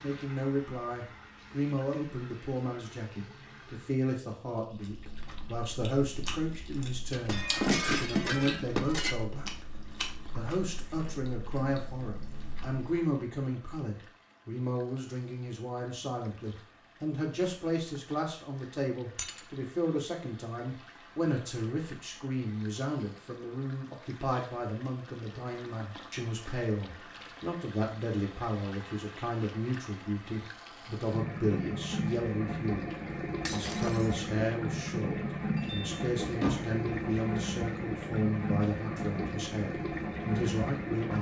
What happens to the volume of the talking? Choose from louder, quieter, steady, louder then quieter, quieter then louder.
steady.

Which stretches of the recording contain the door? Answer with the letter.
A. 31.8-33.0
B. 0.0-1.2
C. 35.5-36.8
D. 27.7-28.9
C.